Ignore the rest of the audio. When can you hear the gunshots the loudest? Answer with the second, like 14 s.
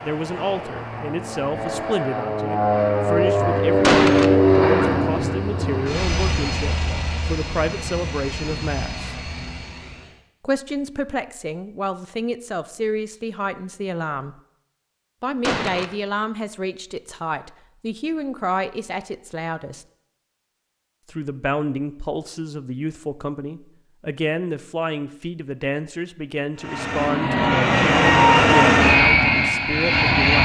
4 s.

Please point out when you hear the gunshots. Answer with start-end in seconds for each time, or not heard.
3.8-4.3, 15.4-15.9.